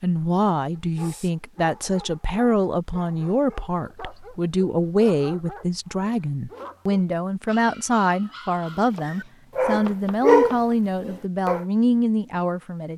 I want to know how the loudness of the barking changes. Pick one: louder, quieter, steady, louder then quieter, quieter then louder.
louder.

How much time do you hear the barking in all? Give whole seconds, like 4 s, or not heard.
11 s.